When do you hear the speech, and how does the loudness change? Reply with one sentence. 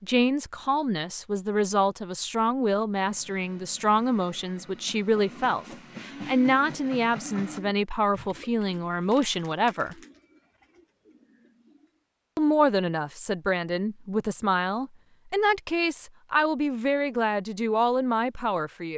The speech can be heard from 0.0 to 9.9 s, at a steady volume; and from 12.3 to 18.9 s, at a steady volume.